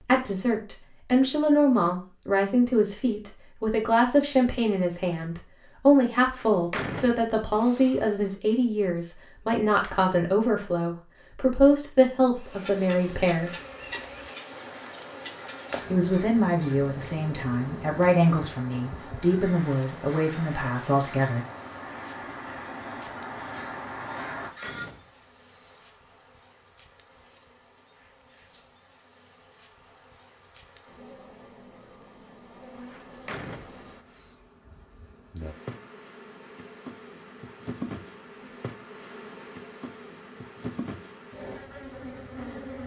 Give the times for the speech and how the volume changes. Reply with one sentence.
The speech can be heard from 0.0 to 13.6 s, at a steady volume; and from 15.9 to 21.4 s, at a steady volume.